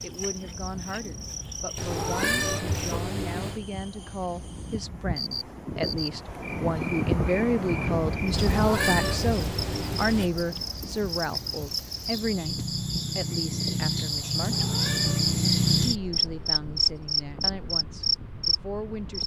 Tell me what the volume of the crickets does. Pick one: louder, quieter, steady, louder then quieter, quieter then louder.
louder.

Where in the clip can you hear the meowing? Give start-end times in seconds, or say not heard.
1.8-3.6, 8.3-10.3, 14.3-15.8.